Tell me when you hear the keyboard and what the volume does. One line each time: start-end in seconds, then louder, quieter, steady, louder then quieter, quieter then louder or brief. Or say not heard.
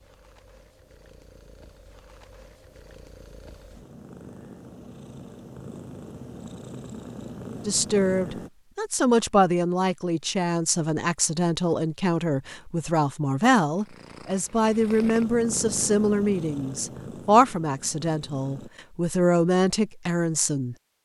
not heard.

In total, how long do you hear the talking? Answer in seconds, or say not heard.
13 s.